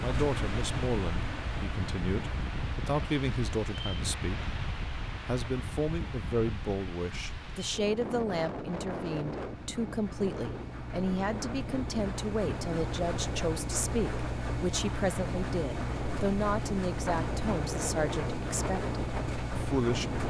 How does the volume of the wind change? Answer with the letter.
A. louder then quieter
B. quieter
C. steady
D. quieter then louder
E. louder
C.